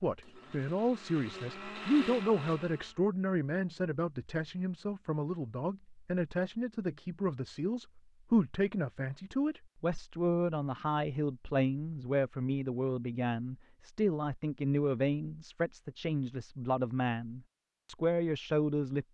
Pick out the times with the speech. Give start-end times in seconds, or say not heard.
0.0-19.1.